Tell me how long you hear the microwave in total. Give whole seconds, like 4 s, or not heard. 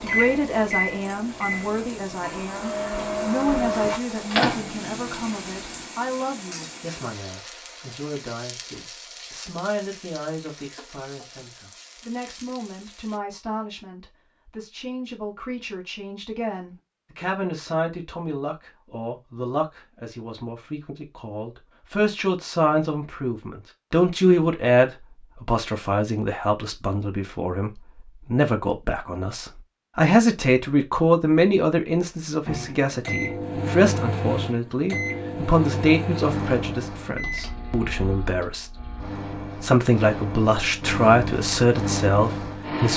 16 s.